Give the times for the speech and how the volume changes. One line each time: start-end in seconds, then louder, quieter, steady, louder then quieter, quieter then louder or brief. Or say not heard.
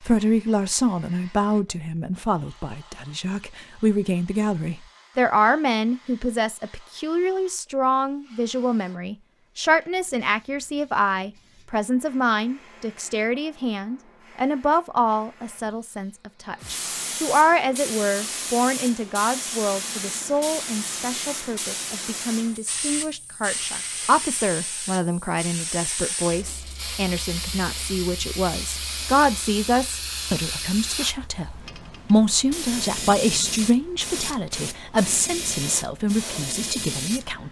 0.0-37.4 steady.